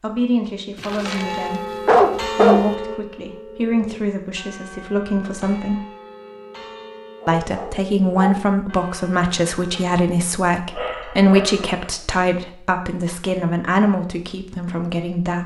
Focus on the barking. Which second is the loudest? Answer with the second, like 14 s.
2 s.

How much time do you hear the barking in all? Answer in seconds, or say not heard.
5 s.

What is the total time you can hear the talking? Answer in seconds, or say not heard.
14 s.